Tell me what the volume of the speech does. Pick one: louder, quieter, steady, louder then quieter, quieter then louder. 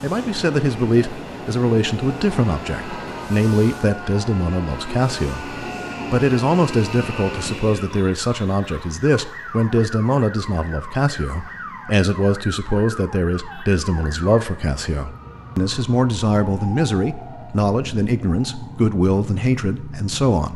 steady.